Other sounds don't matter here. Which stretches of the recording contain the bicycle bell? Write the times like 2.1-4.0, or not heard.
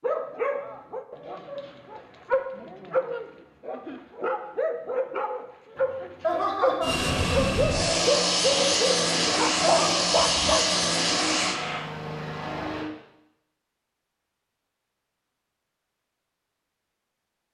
not heard.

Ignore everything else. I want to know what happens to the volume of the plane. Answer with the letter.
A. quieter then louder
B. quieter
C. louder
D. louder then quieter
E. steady
B.